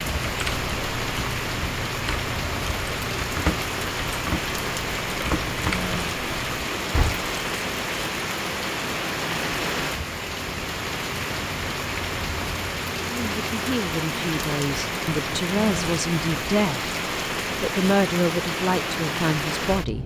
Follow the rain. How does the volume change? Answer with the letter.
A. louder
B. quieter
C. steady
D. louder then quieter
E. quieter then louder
C.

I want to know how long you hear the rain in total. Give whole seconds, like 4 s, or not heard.
20 s.